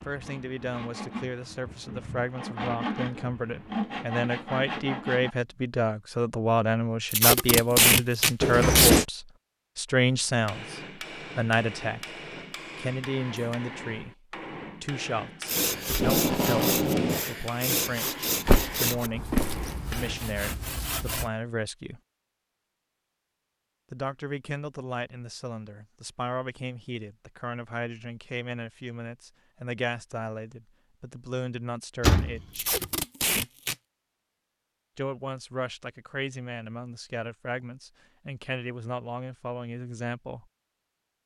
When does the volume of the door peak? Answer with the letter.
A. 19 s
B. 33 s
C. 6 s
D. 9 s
D.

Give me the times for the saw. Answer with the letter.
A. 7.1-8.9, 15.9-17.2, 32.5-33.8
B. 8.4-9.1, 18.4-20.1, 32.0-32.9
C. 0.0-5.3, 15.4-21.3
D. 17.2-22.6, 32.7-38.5
C.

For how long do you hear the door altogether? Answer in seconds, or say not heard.
3 s.